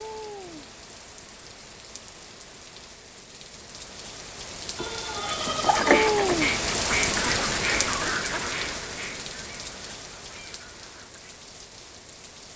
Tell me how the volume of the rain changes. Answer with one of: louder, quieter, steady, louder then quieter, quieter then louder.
louder then quieter.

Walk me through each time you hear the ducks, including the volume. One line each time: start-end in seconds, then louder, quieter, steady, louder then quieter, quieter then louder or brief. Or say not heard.
5.2-11.4 quieter.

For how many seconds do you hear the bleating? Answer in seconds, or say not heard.
2 s.